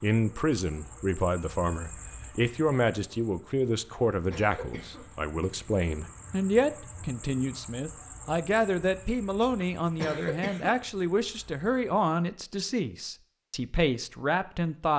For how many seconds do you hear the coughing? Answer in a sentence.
The coughing can be heard for 2 seconds in total.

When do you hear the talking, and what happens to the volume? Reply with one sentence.
You can hear the talking from 0.0 to 14.9 s, at a steady volume.